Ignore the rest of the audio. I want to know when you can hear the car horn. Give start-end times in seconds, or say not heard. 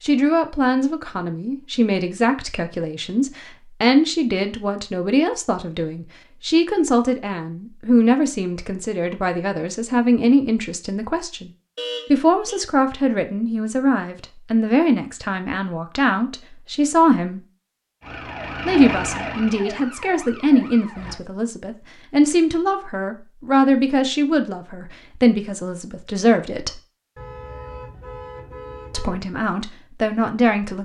11.8-12.6, 27.1-29.1.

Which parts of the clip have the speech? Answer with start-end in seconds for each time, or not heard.
0.0-11.5, 12.1-17.4, 18.6-26.8, 28.9-30.8.